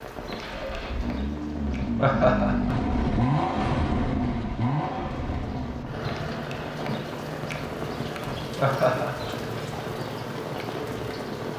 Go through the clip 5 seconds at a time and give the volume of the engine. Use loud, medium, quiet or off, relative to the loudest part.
loud, medium, medium.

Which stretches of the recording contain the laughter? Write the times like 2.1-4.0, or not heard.
1.9-2.9, 8.6-9.8.